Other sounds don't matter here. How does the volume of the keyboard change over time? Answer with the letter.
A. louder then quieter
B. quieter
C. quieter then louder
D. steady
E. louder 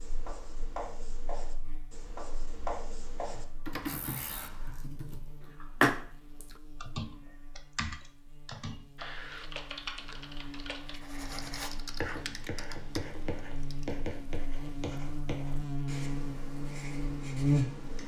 A.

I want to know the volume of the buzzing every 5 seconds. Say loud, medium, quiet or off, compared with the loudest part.
quiet, quiet, quiet, loud.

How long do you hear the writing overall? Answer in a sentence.
You can hear the writing for 12 seconds altogether.